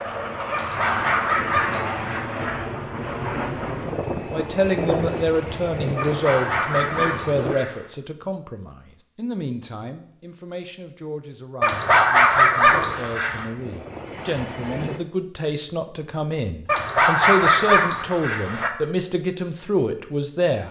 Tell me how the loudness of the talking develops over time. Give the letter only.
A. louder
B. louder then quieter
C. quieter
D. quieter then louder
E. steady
D.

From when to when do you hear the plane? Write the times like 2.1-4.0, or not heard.
0.0-7.5, 12.7-15.0.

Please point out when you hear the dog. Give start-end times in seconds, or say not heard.
0.5-2.5, 6.0-7.8, 11.6-13.4, 16.6-18.7.